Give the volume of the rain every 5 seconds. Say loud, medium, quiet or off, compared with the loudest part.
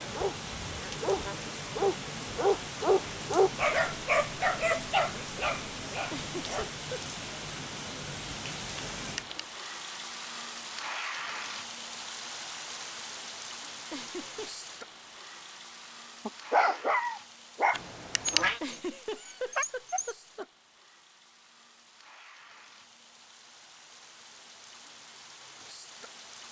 loud, loud, loud, medium, quiet, medium.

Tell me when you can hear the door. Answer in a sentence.
You can't hear the door here.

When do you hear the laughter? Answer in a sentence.
You can hear the laughter from 6.1 to 7.0 s, from 13.9 to 14.7 s and from 18.6 to 20.4 s.